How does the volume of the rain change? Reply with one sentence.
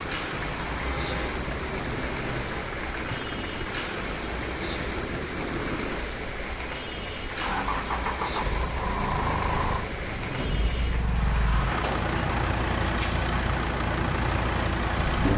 The loudness of the rain stays about the same.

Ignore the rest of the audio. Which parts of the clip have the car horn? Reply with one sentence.
You can hear the car horn from 0.8 to 2.6 s.